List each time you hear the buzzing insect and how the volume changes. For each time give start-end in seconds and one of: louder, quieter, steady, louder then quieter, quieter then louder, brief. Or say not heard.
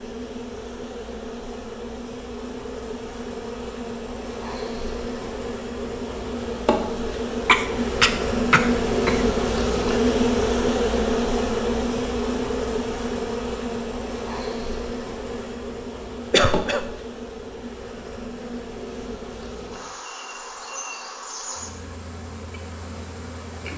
0.0-23.7 louder then quieter.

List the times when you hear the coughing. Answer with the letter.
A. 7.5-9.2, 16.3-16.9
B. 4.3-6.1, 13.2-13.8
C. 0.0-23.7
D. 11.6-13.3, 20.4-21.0
A.